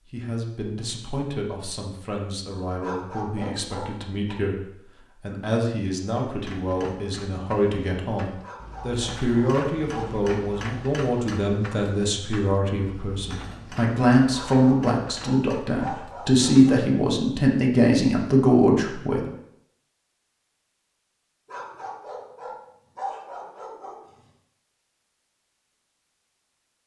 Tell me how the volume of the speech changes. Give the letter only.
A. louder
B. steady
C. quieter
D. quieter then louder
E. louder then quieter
A.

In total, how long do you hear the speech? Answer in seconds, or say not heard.
19 s.